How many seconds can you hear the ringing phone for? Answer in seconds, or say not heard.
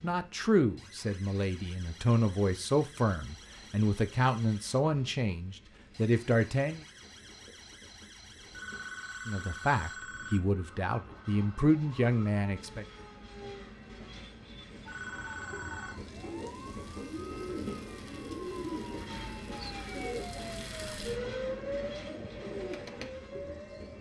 3 s.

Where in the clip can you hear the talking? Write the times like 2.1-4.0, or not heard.
0.0-6.8, 9.2-12.8.